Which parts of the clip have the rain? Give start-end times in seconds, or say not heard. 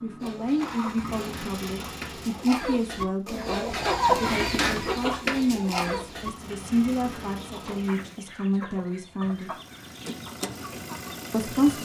not heard.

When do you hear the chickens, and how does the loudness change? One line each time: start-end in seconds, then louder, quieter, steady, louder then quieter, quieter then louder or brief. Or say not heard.
0.2-11.7 louder then quieter.